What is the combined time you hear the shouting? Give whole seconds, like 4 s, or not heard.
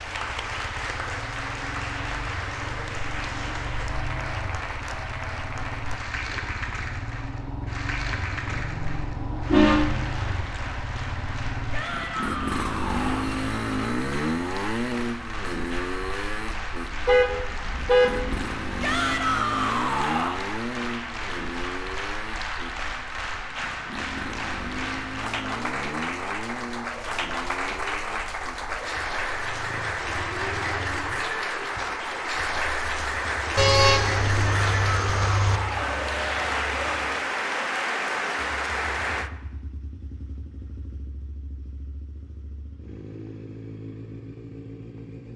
5 s.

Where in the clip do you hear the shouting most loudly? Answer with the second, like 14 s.
19 s.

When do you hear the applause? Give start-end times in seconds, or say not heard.
0.0-39.3.